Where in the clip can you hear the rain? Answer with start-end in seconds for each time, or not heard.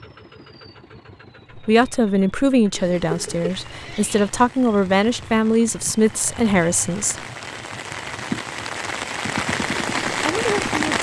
2.9-10.9.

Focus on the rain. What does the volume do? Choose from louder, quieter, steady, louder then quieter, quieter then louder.
louder.